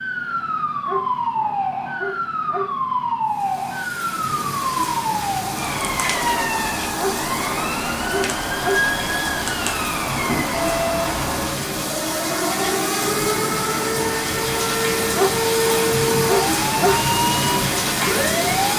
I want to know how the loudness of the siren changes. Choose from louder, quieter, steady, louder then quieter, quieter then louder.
steady.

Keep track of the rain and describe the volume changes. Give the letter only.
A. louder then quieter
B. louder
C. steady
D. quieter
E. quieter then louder
B.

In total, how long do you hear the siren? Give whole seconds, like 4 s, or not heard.
19 s.